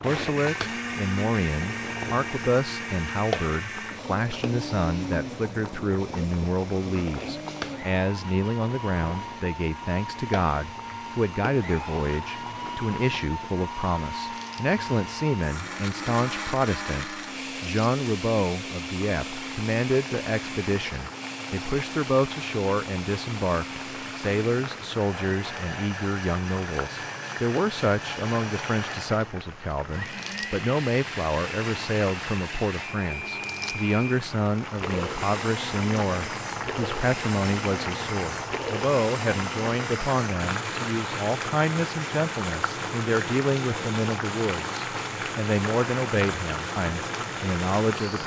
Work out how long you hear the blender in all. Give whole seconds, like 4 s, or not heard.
48 s.